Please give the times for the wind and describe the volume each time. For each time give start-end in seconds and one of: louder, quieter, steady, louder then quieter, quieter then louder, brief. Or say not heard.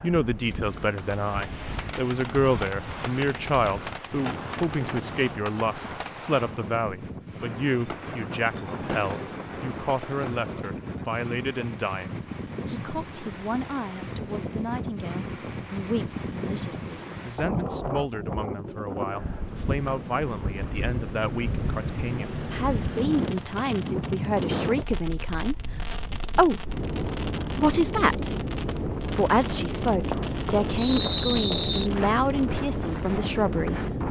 0.0-34.0 louder.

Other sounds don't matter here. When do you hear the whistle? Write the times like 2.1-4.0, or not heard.
30.8-31.9.